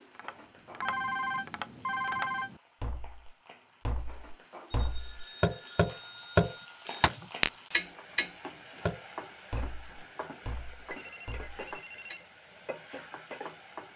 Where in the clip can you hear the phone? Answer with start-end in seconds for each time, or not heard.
0.8-2.6, 4.7-7.2, 10.9-12.3.